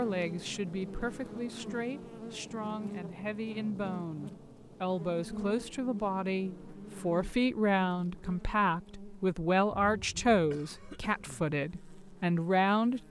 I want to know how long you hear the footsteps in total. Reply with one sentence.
You can't hear the footsteps here.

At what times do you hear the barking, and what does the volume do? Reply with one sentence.
The barking can't be heard in this clip.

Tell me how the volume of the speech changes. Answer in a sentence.
The volume of the speech goes up.